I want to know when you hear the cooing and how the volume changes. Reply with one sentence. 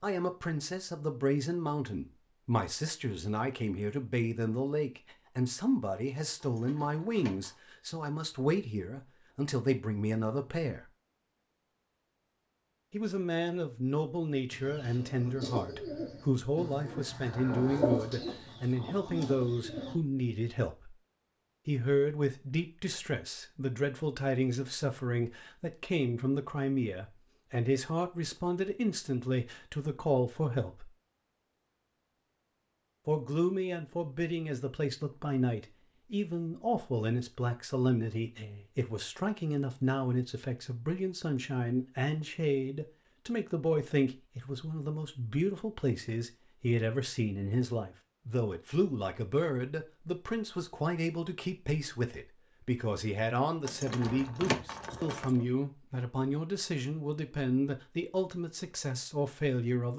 You can hear the cooing from 14.5 to 19.9 s, getting louder then quieter.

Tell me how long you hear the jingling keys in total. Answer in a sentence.
You can hear the jingling keys for 3 seconds altogether.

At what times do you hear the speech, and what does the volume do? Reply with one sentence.
You can hear the speech from 0.0 to 10.9 s, at a steady volume; from 12.9 to 20.9 s, at a steady volume; from 21.6 to 30.9 s, at a steady volume; and from 33.0 to 59.9 s, at a steady volume.